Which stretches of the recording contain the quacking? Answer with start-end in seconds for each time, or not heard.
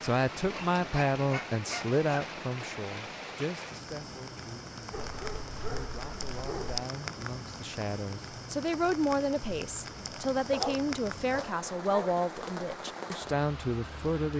not heard.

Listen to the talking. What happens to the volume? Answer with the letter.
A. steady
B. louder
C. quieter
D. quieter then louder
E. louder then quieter
D.